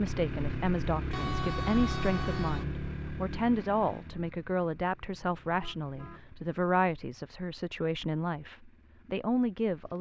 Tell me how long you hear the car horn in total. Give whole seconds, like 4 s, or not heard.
2 s.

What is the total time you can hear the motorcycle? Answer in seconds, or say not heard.
10 s.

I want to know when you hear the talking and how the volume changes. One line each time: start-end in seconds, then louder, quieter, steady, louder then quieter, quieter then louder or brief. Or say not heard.
0.0-9.9 steady.